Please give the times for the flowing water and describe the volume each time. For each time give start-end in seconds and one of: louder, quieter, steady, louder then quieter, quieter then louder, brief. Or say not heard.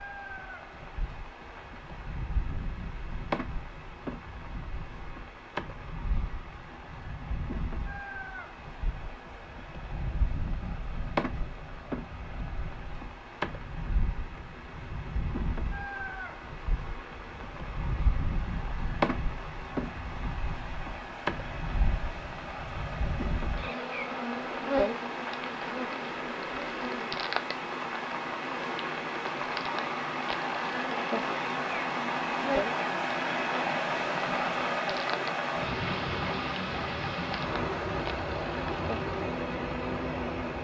0.0-40.5 louder.